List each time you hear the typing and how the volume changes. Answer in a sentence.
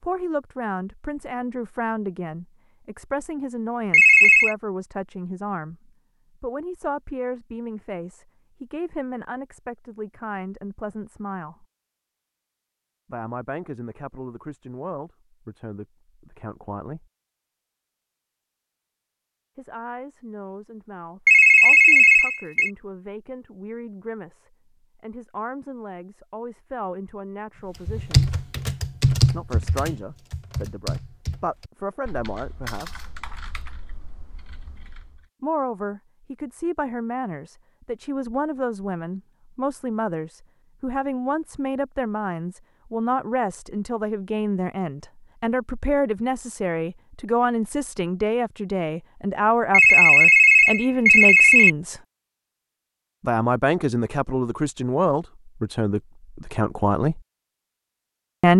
The typing can be heard from 27.9 to 35.2 s, getting quieter.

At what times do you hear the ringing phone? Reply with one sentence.
The ringing phone can be heard from 3.9 to 4.5 s, from 21.2 to 22.7 s and from 49.7 to 51.7 s.